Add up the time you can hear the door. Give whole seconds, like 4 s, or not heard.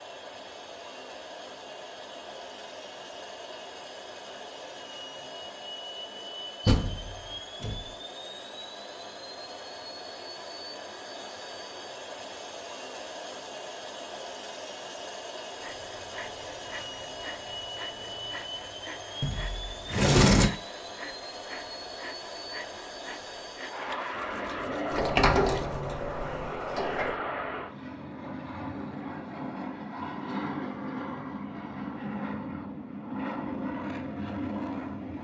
5 s.